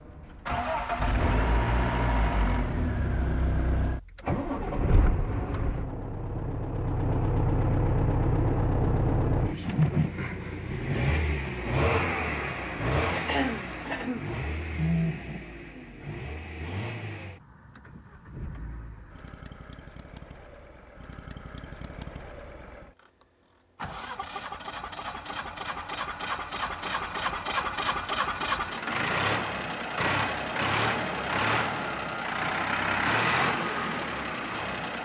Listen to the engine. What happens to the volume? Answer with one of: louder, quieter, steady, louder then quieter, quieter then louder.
quieter then louder.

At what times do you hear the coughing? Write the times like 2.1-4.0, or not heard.
13.1-14.2.